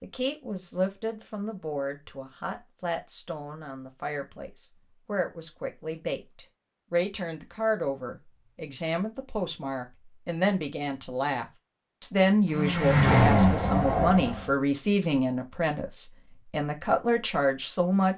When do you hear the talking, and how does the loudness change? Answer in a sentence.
You can hear the talking from 0.0 to 18.1 s, getting louder.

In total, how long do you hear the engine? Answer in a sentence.
You can hear the engine for 2 seconds altogether.